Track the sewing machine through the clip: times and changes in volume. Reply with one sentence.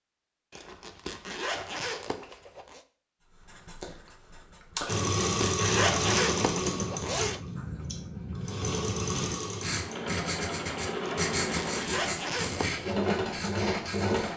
You can hear the sewing machine from 4.8 to 14.3 s, getting quieter then louder.